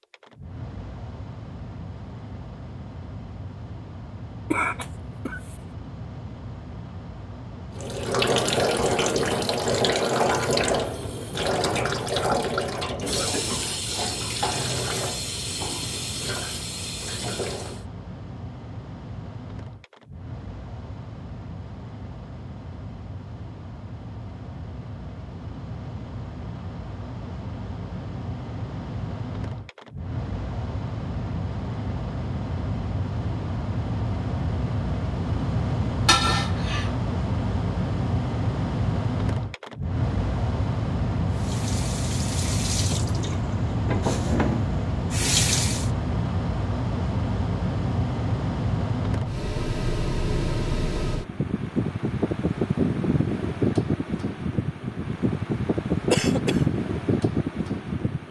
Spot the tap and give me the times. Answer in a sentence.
You can hear the tap from 7.8 to 17.9 s and from 41.3 to 45.9 s.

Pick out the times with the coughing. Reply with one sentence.
You can hear the coughing from 4.5 to 5.5 s, from 36.0 to 36.9 s and from 56.1 to 56.6 s.